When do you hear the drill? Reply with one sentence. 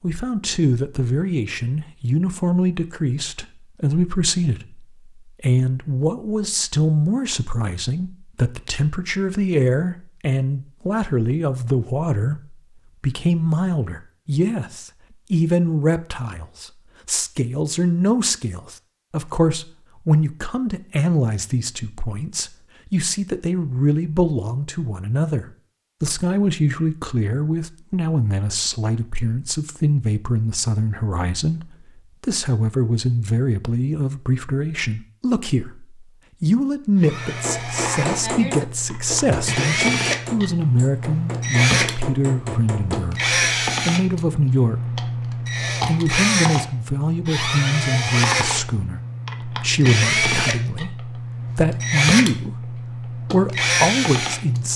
You can hear the drill from 37.0 to 54.7 s.